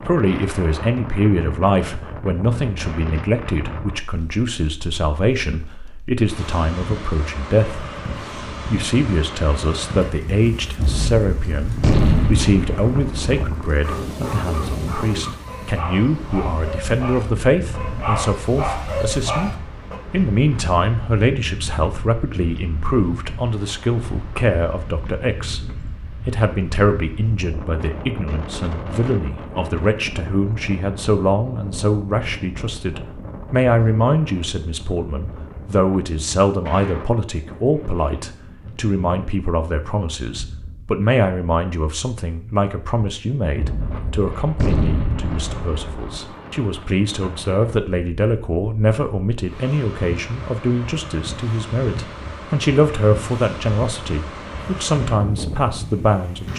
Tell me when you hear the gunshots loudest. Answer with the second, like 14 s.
12 s.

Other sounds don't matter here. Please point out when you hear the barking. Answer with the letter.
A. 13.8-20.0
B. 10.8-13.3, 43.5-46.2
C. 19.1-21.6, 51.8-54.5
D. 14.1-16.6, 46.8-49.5
A.